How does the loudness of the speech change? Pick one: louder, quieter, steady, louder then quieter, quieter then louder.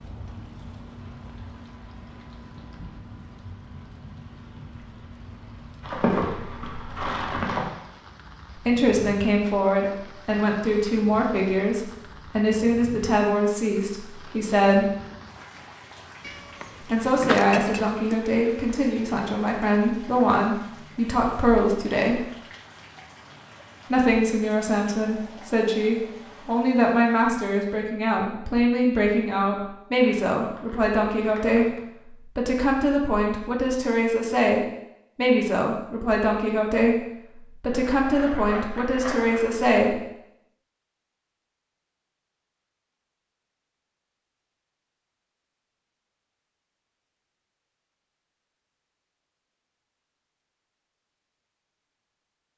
steady.